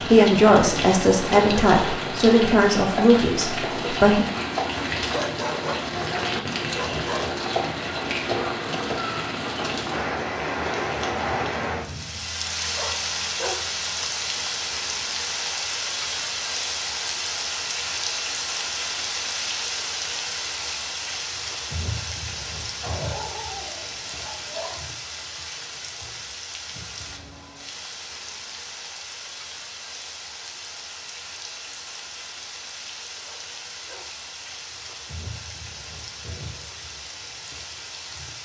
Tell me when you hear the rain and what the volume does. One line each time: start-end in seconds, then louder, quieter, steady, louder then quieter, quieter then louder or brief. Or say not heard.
0.0-38.4 quieter.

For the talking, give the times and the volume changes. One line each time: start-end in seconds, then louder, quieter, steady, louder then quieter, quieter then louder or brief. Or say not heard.
0.1-4.2 quieter.